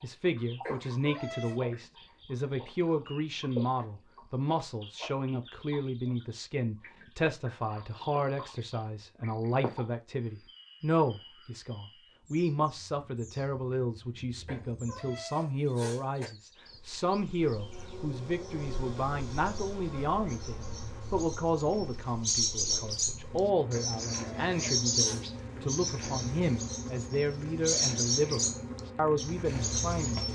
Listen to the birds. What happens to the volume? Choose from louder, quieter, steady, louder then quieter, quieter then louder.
quieter then louder.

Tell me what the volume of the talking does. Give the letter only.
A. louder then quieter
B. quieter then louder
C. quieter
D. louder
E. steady
E.